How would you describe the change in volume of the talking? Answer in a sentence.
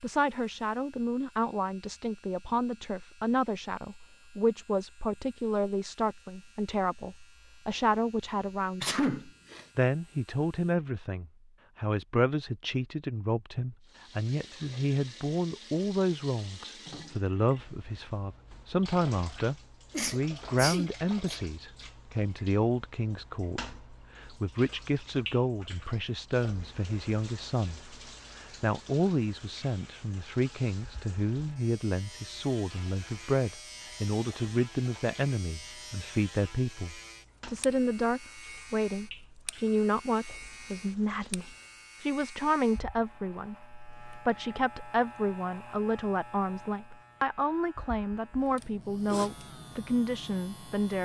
The volume of the talking stays about the same.